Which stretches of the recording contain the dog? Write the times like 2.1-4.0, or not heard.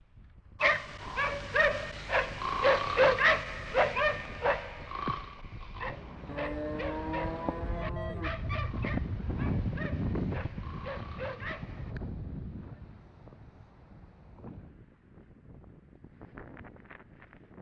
0.6-11.9.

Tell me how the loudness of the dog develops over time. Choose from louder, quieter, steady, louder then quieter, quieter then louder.
quieter.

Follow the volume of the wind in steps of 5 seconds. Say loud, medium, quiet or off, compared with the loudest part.
quiet, loud, loud, quiet.